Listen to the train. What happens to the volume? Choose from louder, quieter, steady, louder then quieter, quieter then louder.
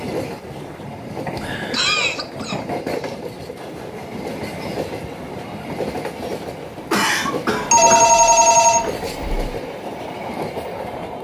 steady.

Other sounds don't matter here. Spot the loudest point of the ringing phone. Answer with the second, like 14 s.
8 s.